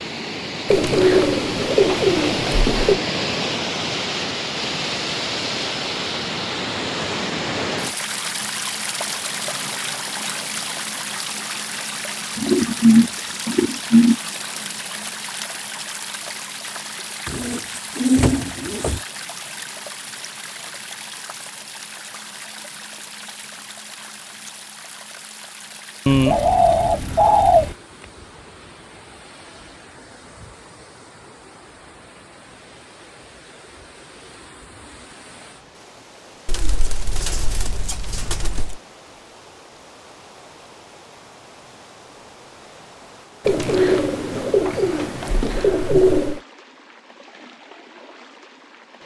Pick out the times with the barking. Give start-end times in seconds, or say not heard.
not heard.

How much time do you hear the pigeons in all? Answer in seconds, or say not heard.
13 s.